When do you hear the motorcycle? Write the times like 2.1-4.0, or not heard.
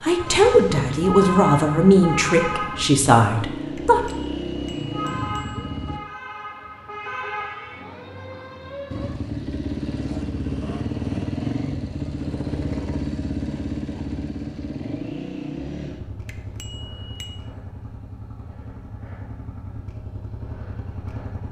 0.0-6.0, 8.9-21.4.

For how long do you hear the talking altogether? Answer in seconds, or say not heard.
4 s.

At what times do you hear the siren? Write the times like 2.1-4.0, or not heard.
0.0-2.9, 4.9-9.2.